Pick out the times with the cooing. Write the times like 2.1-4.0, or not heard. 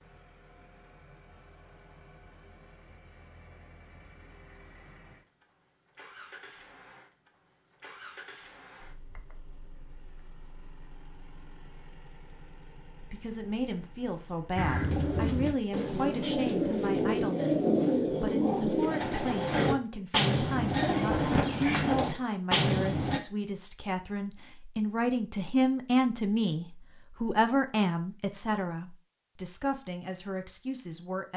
14.6-23.2.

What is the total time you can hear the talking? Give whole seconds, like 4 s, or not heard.
18 s.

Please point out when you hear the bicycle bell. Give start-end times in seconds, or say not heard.
not heard.